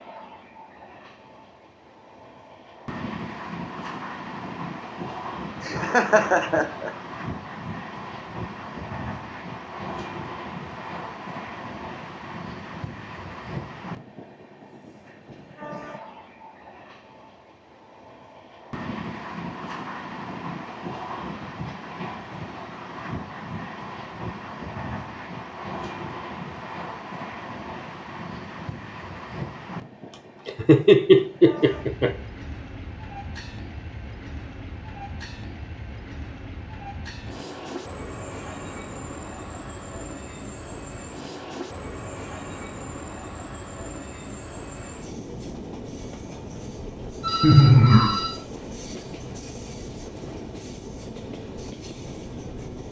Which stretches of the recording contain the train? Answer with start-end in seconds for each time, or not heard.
0.0-52.8.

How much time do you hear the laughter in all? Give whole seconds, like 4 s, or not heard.
4 s.